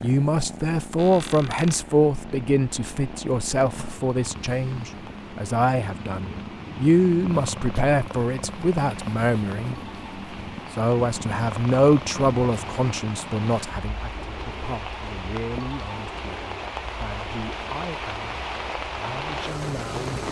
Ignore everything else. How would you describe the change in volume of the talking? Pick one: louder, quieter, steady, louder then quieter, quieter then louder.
quieter.